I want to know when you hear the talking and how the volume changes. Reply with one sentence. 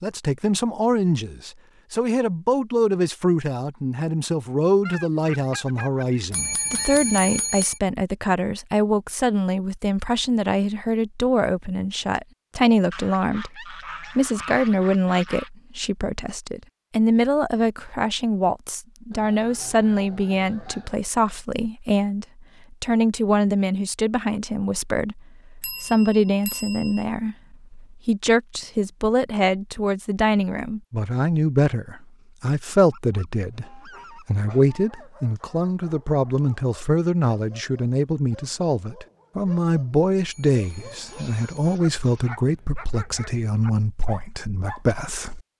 You can hear the talking from 0.0 to 45.4 s, at a steady volume.